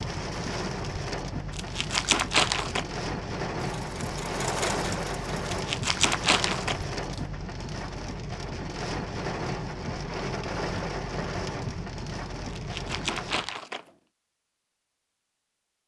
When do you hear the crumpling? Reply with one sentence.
You can hear the crumpling from 1.5 to 2.9 s, from 5.5 to 7.2 s and from 12.5 to 13.9 s.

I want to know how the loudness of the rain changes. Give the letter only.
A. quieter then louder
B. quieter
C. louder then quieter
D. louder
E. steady
E.